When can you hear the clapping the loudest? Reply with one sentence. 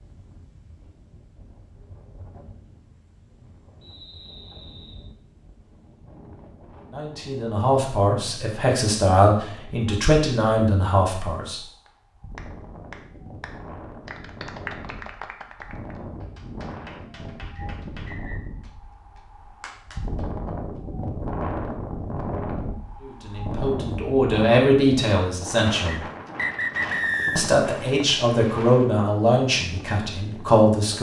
The loudest moment of the clapping is at 15 seconds.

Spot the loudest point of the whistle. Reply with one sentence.
The volume of the whistle peaks at 27 seconds.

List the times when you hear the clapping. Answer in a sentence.
The clapping can be heard from 11.8 to 20.8 s.